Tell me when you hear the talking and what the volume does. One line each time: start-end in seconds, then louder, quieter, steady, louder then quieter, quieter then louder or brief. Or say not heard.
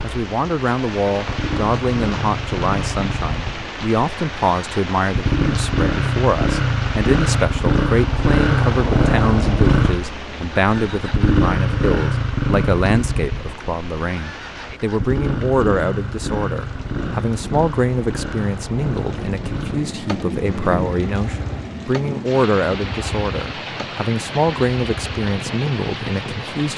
0.0-26.7 steady.